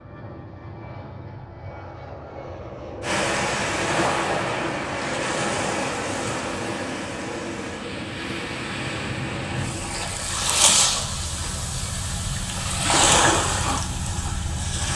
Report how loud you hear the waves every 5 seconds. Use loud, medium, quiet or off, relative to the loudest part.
loud, medium, loud.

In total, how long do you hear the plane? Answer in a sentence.
You can hear the plane for 10 seconds altogether.